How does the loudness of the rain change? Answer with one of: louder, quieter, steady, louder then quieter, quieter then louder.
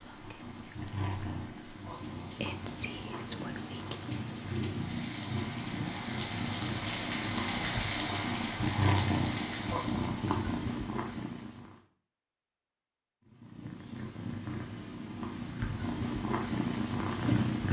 louder.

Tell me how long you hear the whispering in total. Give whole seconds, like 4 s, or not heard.
4 s.